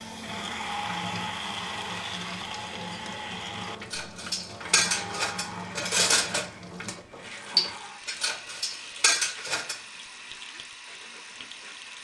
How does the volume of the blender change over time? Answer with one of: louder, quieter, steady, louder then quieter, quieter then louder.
quieter.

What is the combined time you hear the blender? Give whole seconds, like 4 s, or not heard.
12 s.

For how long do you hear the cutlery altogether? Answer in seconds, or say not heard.
6 s.